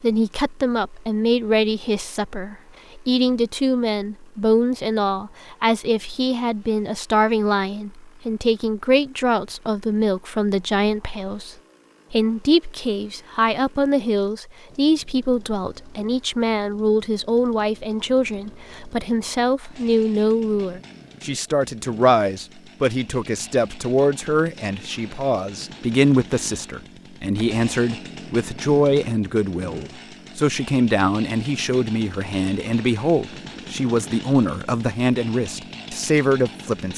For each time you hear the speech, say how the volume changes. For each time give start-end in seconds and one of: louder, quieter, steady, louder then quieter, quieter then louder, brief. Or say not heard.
0.0-36.9 steady.